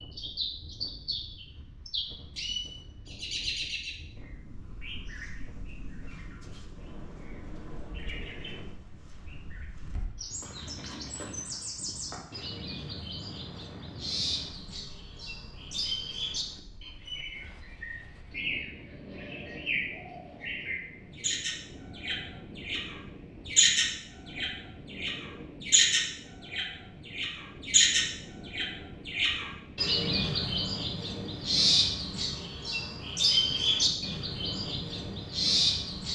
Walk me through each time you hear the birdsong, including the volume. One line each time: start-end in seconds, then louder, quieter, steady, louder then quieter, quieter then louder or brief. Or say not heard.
0.0-36.0 louder.